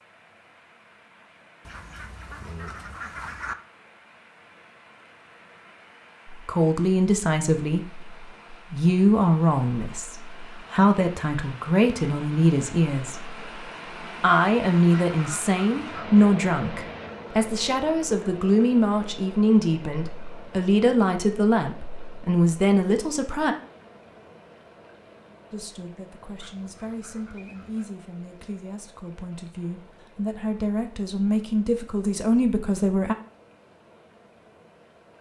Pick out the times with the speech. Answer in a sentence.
You can hear the speech from 6.2 to 13.3 s, from 14.2 to 23.6 s and from 25.5 to 33.1 s.